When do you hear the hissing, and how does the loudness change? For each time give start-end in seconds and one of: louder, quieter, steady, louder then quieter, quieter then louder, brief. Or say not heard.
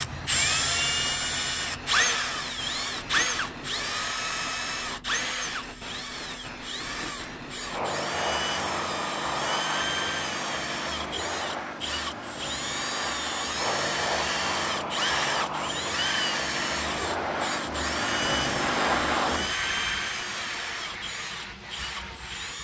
0.0-22.5 louder.